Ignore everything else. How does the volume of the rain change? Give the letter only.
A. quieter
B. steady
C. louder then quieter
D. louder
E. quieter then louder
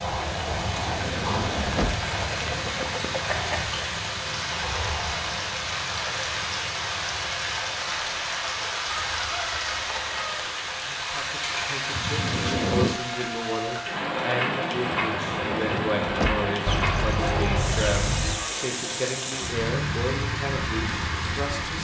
B.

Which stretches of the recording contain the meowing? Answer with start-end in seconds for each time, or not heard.
not heard.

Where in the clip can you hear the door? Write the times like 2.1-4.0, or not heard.
0.5-2.0, 11.9-13.0, 15.0-16.5.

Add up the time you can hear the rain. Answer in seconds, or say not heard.
22 s.